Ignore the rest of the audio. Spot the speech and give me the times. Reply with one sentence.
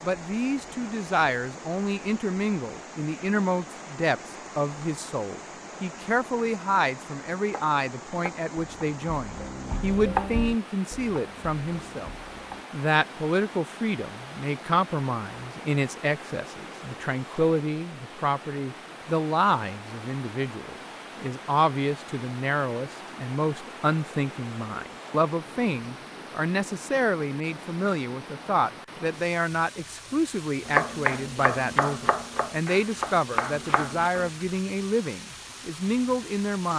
The speech can be heard from 0.0 to 12.1 s and from 12.7 to 36.7 s.